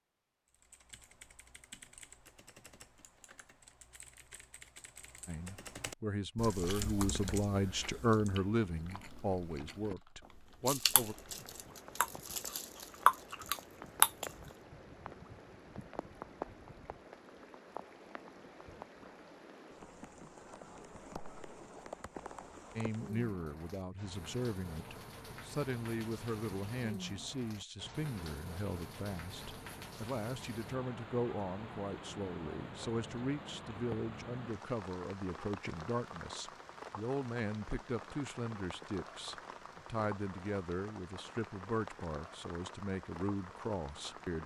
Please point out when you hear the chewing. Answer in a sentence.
You can hear the chewing from 6.5 to 9.9 s and from 10.7 to 14.3 s.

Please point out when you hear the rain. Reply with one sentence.
You can hear the rain from 10.9 to 44.4 s.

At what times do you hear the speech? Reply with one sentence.
The speech can be heard from 5.2 to 11.2 s and from 22.8 to 44.4 s.